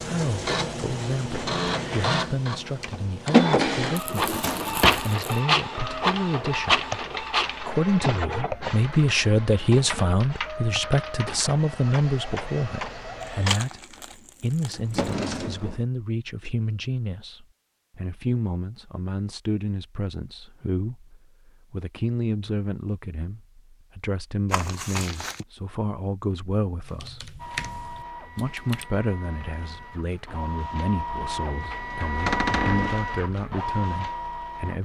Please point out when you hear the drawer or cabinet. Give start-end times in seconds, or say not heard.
4.0-5.1, 14.7-15.8, 32.2-33.0.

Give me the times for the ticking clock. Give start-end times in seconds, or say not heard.
not heard.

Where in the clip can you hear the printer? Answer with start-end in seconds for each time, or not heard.
0.0-13.6, 27.4-34.8.